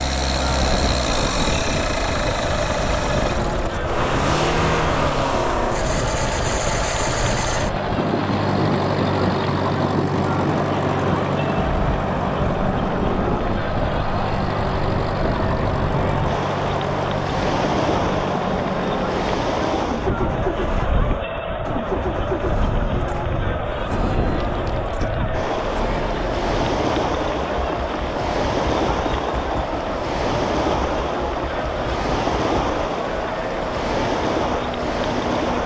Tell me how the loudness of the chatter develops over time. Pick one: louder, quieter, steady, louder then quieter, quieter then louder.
steady.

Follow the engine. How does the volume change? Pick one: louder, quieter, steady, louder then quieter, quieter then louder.
quieter.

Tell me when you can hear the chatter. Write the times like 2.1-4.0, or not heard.
0.2-35.6.